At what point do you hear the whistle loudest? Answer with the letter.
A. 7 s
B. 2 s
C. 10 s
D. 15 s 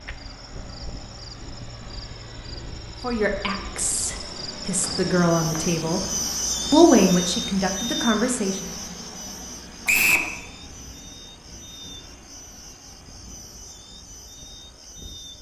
C.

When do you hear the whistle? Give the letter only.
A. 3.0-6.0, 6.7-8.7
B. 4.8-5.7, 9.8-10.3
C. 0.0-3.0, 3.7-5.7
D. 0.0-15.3
B.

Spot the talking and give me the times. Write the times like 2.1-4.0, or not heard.
3.0-6.0, 6.7-8.7.